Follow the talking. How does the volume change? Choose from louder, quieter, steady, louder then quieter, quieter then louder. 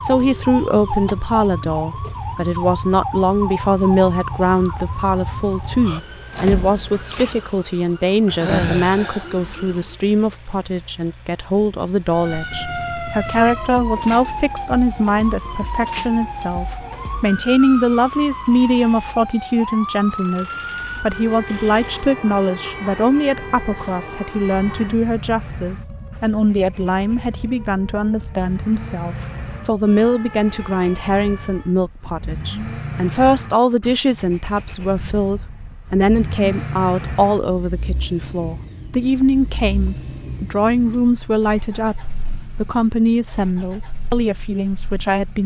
steady.